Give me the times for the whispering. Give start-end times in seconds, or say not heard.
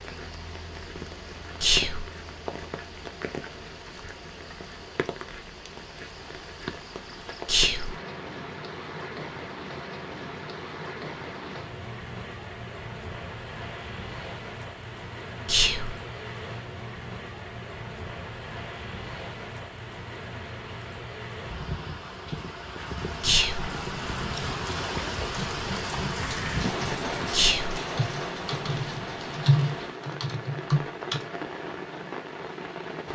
1.6-2.0, 7.5-8.0, 15.4-15.9, 23.2-23.7, 27.3-27.8.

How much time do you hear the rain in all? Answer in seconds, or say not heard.
33 s.